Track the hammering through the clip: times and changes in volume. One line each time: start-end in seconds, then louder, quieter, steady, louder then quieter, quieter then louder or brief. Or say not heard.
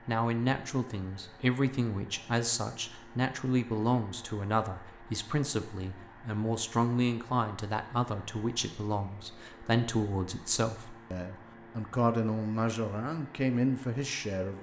not heard.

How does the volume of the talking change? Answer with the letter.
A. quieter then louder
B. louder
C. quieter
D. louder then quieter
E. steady
E.